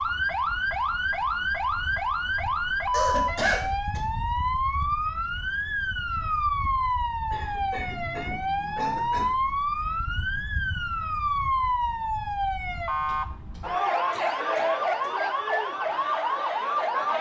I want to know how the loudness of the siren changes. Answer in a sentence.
The volume of the siren stays about the same.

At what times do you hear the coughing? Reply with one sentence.
The coughing can be heard from 2.9 to 4.0 s, from 7.3 to 9.3 s and from 13.1 to 15.1 s.